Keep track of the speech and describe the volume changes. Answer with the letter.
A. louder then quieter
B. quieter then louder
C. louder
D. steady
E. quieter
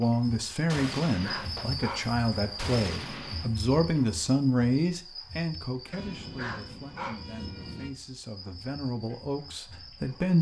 B.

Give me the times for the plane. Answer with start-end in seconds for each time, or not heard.
6.0-7.9.